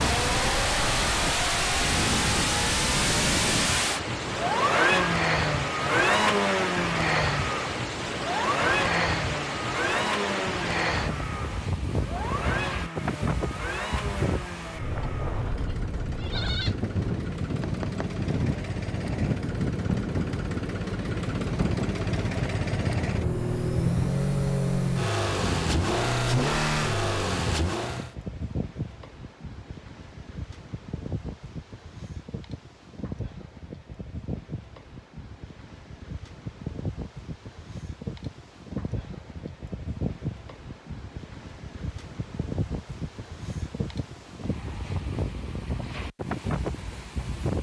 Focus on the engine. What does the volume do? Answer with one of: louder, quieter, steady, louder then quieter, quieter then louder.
quieter then louder.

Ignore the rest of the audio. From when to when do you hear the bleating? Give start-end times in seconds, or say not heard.
15.0-16.8.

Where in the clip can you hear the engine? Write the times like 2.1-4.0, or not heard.
0.0-28.1.